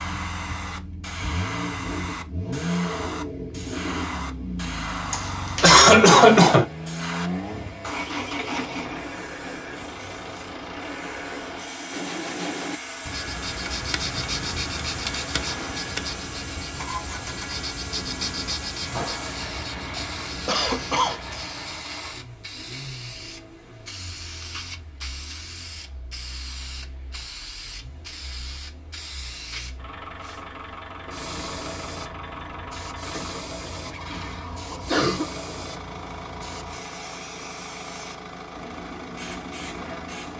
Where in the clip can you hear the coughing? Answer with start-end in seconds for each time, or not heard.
5.1-6.7, 20.4-21.2, 33.0-35.3.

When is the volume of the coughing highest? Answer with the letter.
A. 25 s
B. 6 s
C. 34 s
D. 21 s
B.